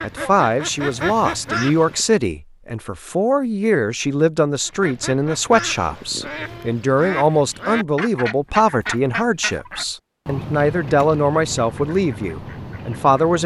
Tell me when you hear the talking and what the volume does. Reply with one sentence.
The talking can be heard from 0.0 to 13.4 s, at a steady volume.